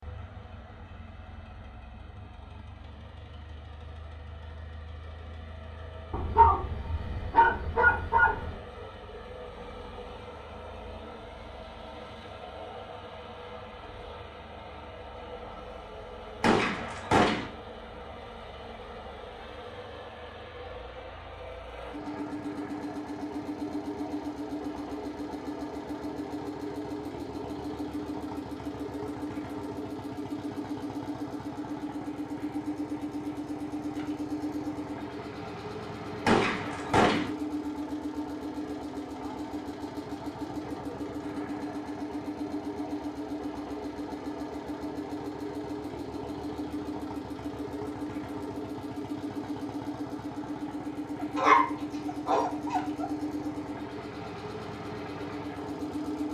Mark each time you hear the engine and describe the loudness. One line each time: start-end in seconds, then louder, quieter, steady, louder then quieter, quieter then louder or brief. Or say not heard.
0.0-56.2 louder.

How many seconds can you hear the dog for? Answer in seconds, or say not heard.
4 s.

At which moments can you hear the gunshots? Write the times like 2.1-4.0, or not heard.
16.4-17.4, 36.2-37.3.